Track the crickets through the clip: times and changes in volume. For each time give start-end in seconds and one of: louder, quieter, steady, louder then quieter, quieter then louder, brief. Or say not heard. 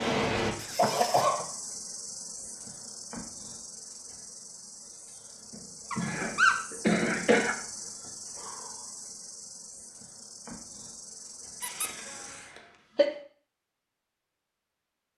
0.0-12.6 quieter.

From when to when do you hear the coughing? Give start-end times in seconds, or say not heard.
0.8-1.4, 6.0-7.5, 11.6-13.1.